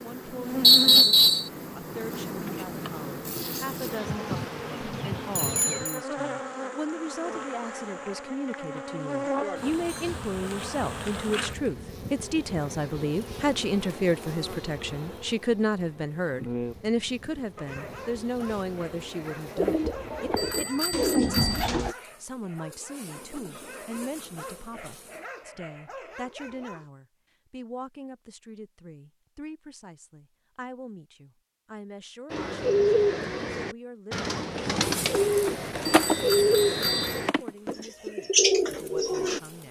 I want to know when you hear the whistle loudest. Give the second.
1 s.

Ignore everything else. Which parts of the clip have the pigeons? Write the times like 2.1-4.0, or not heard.
19.6-21.9, 32.3-39.4.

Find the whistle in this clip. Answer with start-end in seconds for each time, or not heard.
0.6-1.5, 36.0-37.2.